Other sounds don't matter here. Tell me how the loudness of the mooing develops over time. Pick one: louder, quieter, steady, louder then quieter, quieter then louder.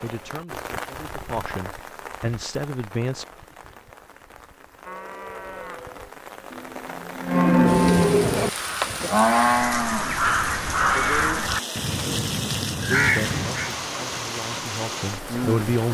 louder then quieter.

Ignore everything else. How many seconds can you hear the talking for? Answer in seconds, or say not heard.
6 s.